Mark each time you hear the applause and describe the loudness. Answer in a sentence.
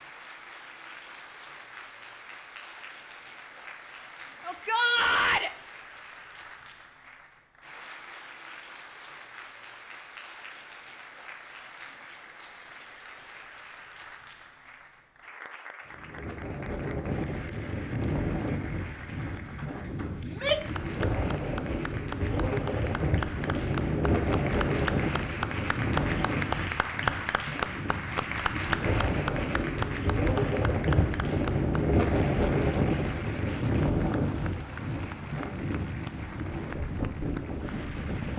The applause can be heard from 0.0 to 38.3 s, getting louder then quieter.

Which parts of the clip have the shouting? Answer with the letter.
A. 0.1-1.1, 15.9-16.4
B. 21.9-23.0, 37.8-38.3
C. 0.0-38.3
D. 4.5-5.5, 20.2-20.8
D.